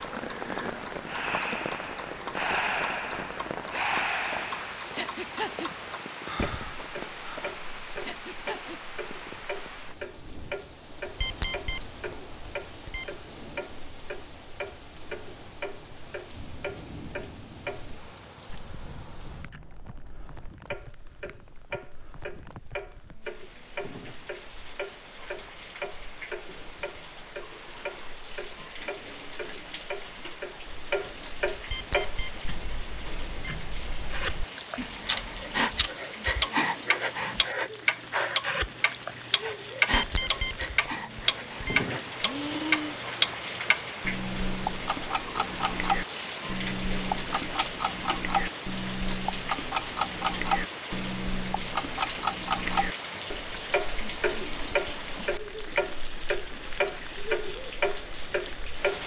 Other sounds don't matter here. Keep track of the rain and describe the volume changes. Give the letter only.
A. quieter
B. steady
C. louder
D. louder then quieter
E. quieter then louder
E.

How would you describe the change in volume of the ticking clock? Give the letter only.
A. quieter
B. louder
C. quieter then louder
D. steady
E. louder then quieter
B.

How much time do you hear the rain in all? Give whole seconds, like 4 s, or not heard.
59 s.